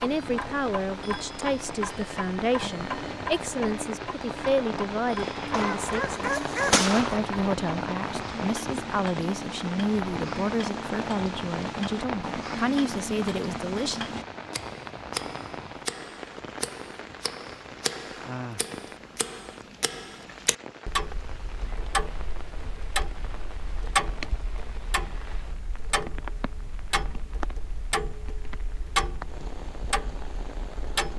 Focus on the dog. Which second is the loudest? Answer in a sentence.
The loudest moment of the dog is at 7 seconds.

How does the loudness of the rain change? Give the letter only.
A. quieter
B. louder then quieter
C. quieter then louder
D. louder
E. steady
A.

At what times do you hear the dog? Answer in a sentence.
You can hear the dog from 5.5 to 7.2 s.